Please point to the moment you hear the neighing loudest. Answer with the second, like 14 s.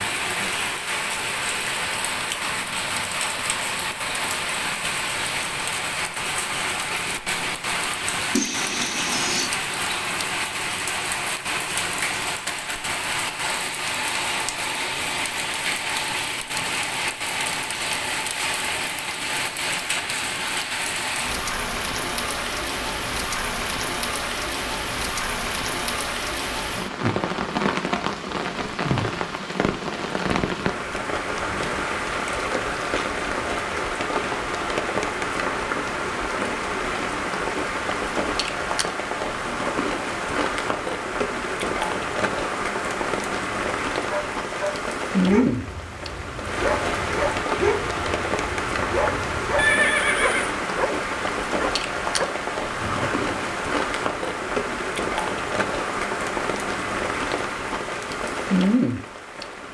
50 s.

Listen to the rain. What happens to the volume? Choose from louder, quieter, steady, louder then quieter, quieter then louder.
steady.